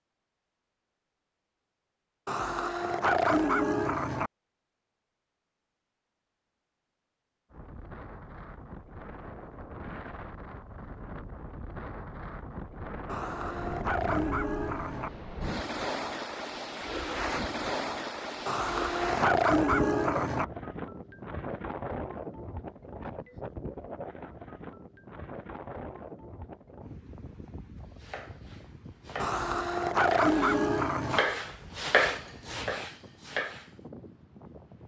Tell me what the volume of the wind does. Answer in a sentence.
The loudness of the wind goes up, then down.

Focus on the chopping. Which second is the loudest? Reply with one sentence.
The loudest moment of the chopping is at 32 seconds.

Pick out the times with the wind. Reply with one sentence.
You can hear the wind from 7.5 to 34.8 s.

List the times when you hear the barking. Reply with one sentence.
The barking can be heard from 2.2 to 4.3 s, from 13.1 to 15.1 s, from 18.4 to 20.4 s and from 29.2 to 31.2 s.